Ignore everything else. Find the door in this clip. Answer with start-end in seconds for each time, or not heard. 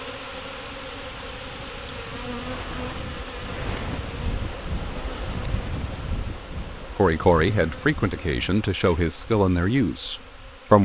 2.4-4.0.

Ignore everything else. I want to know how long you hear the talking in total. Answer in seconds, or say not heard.
4 s.